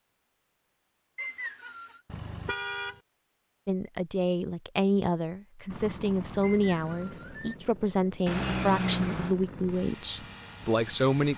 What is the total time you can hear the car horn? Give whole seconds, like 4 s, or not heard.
2 s.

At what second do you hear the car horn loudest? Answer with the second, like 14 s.
9 s.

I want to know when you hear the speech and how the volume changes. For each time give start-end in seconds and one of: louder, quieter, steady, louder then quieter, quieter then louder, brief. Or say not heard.
3.6-11.3 steady.